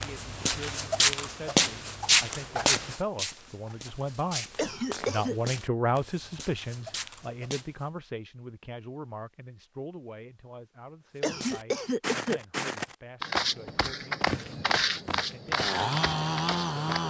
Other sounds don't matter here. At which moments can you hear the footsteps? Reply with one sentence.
The footsteps can be heard from 0.0 to 7.8 s and from 11.3 to 17.0 s.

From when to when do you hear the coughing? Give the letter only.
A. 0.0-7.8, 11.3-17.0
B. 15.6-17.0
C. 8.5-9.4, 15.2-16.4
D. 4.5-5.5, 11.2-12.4
D.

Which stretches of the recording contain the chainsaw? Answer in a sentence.
The chainsaw can be heard from 15.6 to 17.0 s.